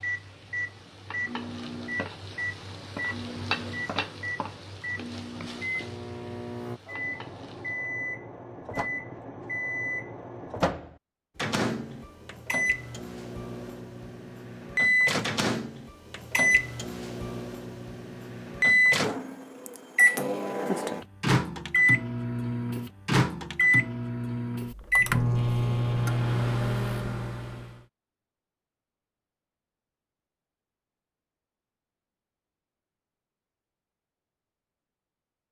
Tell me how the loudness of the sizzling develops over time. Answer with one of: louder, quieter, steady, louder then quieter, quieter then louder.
louder then quieter.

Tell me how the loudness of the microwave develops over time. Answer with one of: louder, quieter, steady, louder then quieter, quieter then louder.
louder.